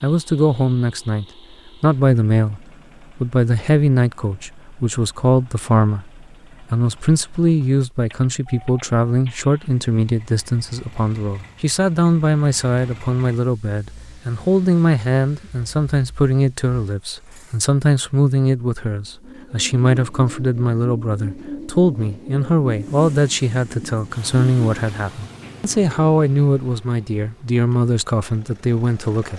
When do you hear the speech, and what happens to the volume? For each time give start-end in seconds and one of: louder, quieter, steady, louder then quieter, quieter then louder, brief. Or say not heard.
0.0-29.3 steady.